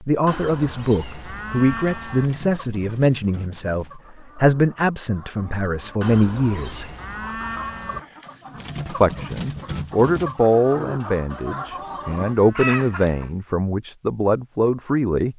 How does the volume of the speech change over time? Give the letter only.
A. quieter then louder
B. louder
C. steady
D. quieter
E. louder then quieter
C.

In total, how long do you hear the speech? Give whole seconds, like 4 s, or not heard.
13 s.